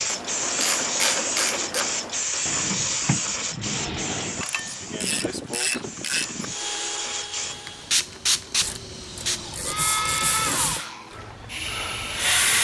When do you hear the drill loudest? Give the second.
10 s.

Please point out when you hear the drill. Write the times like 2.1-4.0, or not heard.
6.5-12.3.